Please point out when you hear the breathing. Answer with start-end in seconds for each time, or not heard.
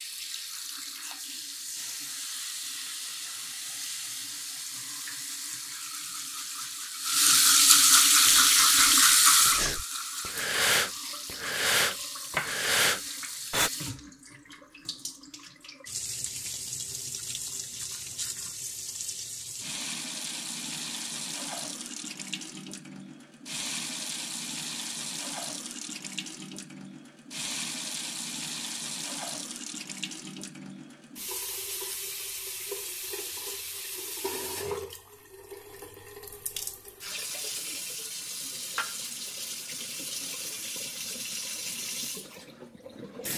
8.2-13.7.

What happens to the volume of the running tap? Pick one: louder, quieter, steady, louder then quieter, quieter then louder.
quieter.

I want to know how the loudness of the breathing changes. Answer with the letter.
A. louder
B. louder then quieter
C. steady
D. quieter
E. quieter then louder
A.